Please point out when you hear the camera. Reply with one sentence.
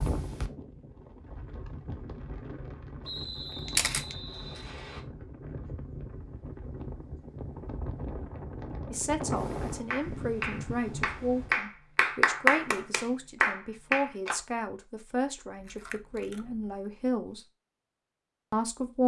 You can hear the camera from 3.6 to 4.2 s and from 15.6 to 16.8 s.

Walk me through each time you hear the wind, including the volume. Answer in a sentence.
You can hear the wind from 0.0 to 11.6 s, getting louder.